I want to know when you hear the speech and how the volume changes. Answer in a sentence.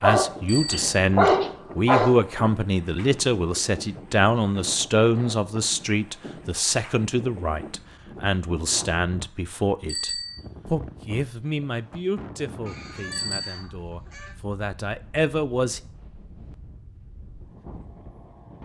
You can hear the speech from 0.0 to 15.8 s, getting quieter.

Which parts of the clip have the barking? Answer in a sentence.
The barking can be heard from 0.0 to 2.2 s.